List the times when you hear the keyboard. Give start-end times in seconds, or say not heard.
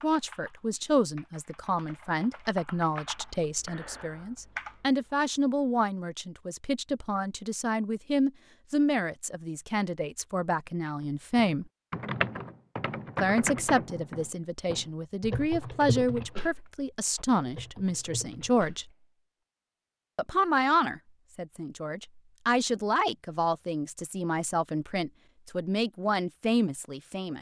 0.0-5.2, 10.8-18.9.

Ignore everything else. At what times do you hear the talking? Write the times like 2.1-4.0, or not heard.
0.0-11.7, 13.2-18.9, 20.1-27.3.